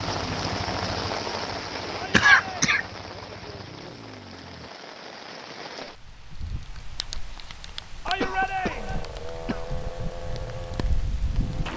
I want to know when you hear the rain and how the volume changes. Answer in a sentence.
The rain can be heard from 0.0 to 11.7 s, getting quieter.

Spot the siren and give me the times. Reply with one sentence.
The siren can't be heard in this clip.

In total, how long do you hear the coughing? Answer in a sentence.
You can hear the coughing for 2 seconds altogether.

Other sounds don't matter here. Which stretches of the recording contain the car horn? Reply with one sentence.
The car horn can't be heard in this clip.